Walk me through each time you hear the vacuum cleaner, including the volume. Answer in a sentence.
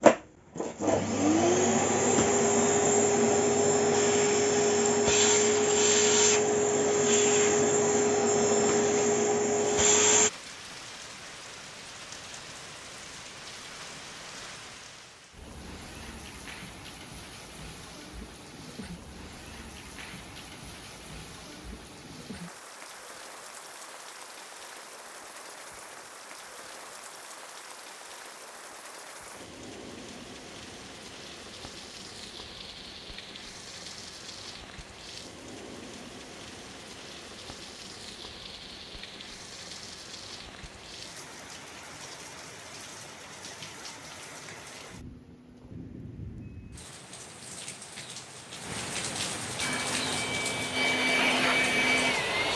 The vacuum cleaner can be heard from 0.0 to 10.3 s, at a steady volume; and briefly from 49.6 to 52.5 s.